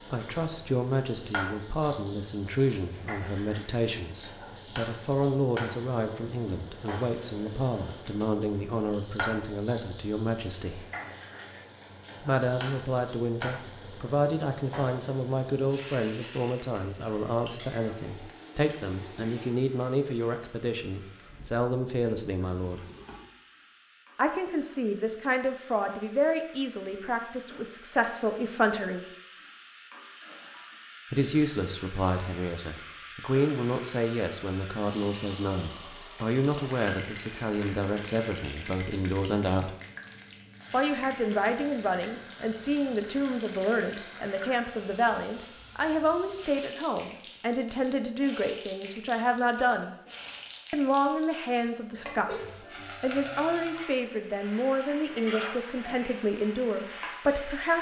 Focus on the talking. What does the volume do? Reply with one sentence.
The loudness of the talking stays about the same.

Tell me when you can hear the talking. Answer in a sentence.
The talking can be heard from 0.1 to 10.8 s, from 12.2 to 22.8 s, from 24.1 to 29.1 s, from 31.1 to 39.7 s, from 40.7 to 50.0 s and from 50.7 to 57.7 s.